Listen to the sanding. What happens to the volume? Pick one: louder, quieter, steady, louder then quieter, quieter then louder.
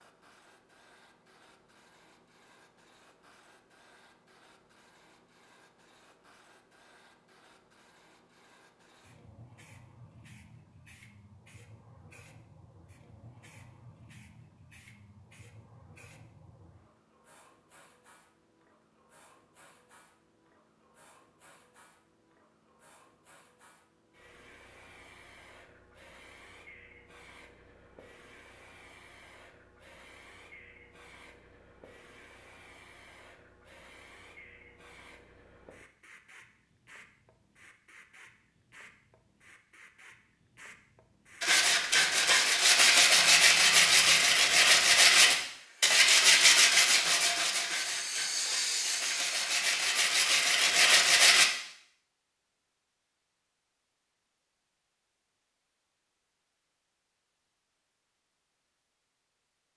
quieter then louder.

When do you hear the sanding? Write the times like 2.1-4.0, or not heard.
41.4-51.5.